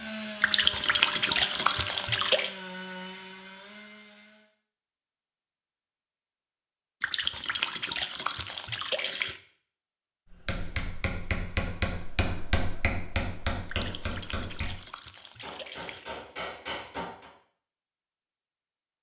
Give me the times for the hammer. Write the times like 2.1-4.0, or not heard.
10.3-14.8, 15.4-17.3.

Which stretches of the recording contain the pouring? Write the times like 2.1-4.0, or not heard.
0.4-2.5, 7.0-9.4, 13.7-16.2.